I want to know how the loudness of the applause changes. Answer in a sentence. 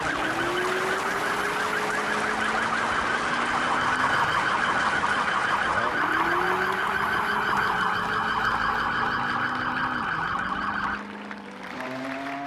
The loudness of the applause goes down.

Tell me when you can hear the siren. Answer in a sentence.
You can hear the siren from 0.0 to 11.1 s.